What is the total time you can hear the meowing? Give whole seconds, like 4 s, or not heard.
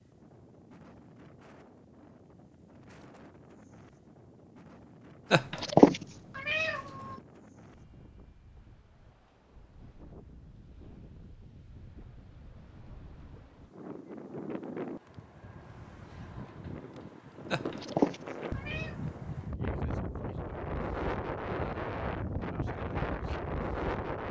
3 s.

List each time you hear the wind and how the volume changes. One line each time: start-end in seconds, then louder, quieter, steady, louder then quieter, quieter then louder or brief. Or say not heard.
0.0-24.2 louder.